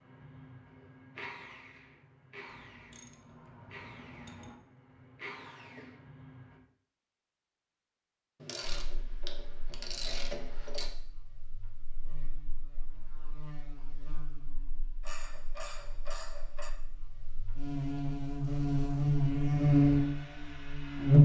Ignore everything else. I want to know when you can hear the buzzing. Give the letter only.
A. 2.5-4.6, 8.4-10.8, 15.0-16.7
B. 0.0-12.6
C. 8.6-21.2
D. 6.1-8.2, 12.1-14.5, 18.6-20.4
C.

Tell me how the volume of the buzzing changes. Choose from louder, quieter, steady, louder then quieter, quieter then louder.
louder.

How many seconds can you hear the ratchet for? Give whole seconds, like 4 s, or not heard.
6 s.